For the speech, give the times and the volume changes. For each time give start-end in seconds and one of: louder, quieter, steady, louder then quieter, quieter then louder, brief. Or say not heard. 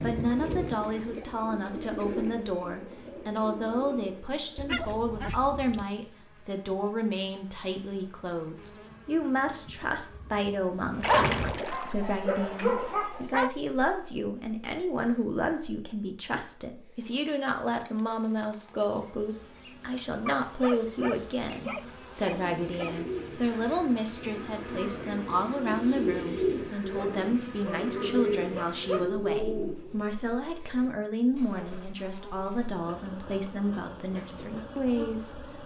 0.0-35.5 steady.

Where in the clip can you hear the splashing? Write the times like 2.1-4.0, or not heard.
11.0-11.9.